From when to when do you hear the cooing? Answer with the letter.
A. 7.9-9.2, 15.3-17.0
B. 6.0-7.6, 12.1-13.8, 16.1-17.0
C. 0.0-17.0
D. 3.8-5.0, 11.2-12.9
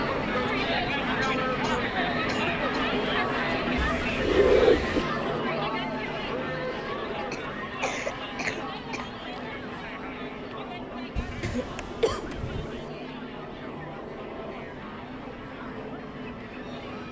D.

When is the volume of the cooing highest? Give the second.
5 s.